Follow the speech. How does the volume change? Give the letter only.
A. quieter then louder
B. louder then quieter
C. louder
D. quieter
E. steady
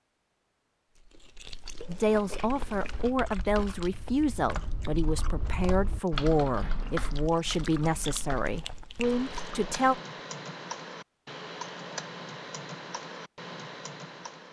E.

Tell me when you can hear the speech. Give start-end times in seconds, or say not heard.
1.9-9.9.